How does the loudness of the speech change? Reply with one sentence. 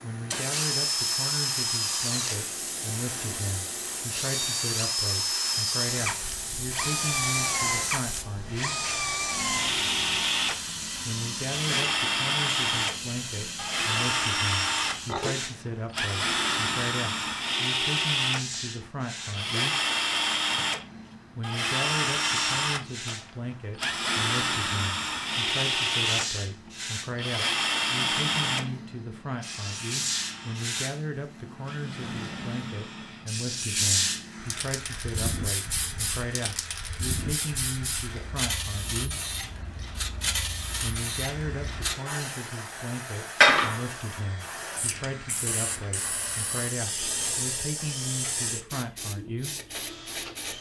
The loudness of the speech stays about the same.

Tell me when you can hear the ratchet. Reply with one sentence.
You can't hear the ratchet here.